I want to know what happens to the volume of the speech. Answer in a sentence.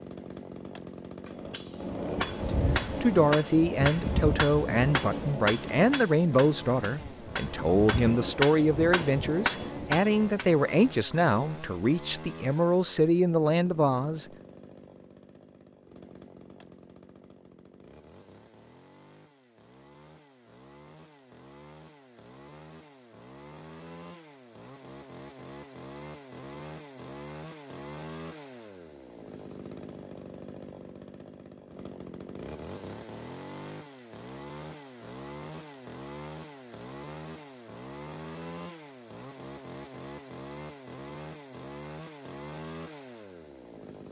The loudness of the speech stays about the same.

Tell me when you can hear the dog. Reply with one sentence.
The dog can't be heard in this clip.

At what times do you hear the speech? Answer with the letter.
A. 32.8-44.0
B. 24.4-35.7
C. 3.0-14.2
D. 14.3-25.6
C.